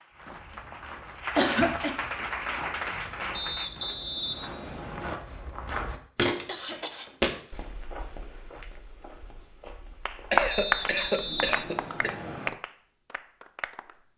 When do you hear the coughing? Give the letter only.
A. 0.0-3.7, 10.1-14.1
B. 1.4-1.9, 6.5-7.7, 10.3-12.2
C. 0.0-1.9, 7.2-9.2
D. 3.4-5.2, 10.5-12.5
B.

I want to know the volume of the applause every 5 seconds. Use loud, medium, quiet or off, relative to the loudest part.
medium, off, loud.